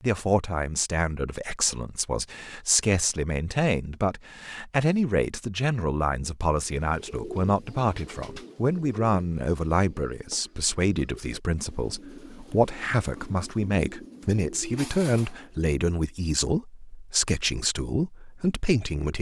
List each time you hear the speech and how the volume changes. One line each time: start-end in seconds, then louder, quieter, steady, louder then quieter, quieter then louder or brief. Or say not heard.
0.0-19.1 steady.